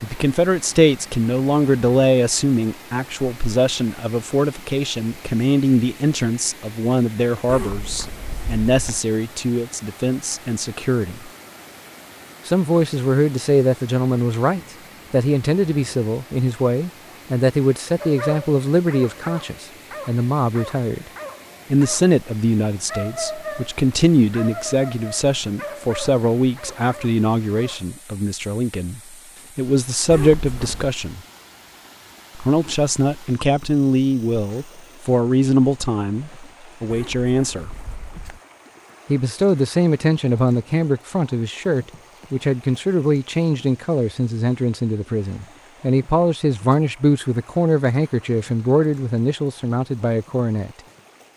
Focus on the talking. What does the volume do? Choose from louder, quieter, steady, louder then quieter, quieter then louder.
steady.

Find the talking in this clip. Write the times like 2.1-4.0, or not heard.
0.0-11.3, 12.4-21.1, 21.7-31.2, 32.4-37.8, 39.0-50.7.